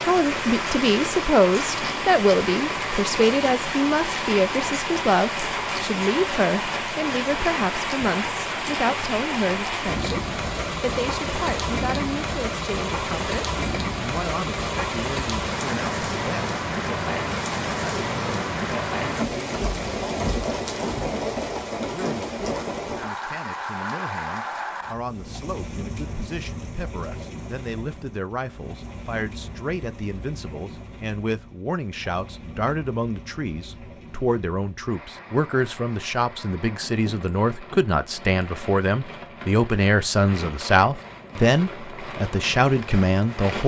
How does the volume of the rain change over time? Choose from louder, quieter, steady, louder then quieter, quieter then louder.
quieter.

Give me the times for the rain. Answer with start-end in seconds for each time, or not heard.
0.0-43.6.